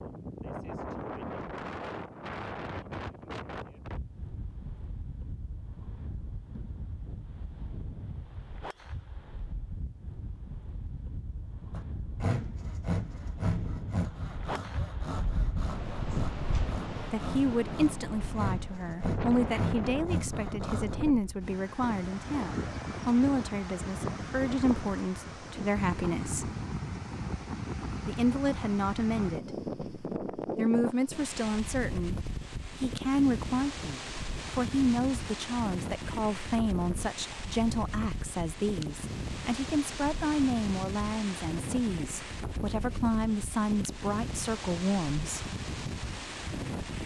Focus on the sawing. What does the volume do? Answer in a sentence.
The volume of the sawing goes down, then up.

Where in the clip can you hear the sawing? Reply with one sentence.
The sawing can be heard from 11.7 to 20.9 s.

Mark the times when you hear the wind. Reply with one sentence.
The wind can be heard from 0.0 to 47.0 s.